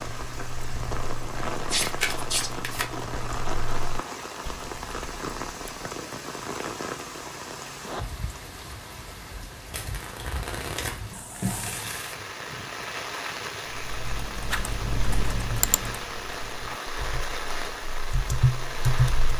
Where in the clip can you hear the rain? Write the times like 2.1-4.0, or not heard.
0.0-19.3.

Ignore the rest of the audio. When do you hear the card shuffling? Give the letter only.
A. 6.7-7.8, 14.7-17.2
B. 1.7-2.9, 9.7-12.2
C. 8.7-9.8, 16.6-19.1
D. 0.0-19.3
B.